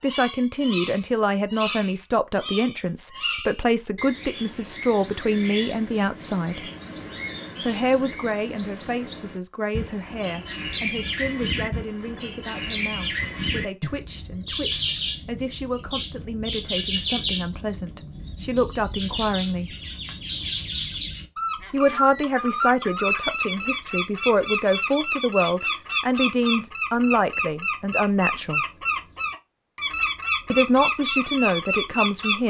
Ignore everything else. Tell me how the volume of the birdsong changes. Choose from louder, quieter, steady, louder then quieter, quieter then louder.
louder.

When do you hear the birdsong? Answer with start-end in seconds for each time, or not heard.
0.0-32.4.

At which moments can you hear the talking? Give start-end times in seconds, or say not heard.
0.0-6.7, 7.6-19.8, 21.7-28.6, 30.5-32.4.